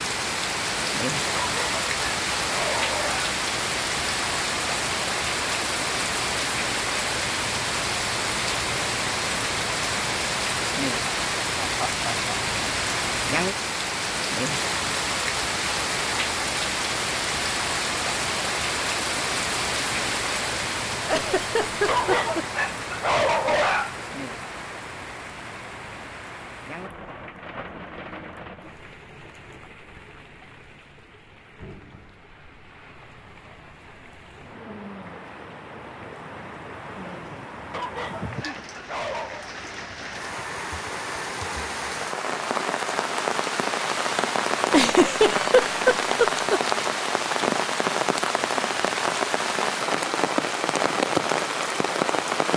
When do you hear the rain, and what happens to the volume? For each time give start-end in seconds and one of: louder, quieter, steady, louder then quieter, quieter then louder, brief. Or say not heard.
0.0-52.5 quieter then louder.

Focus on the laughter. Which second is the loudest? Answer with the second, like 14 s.
45 s.